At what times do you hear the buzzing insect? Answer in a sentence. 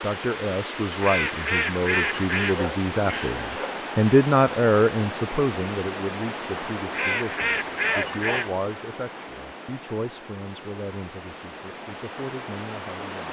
You can't hear the buzzing insect here.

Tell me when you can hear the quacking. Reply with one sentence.
You can hear the quacking from 1.0 to 2.6 s and from 6.9 to 8.5 s.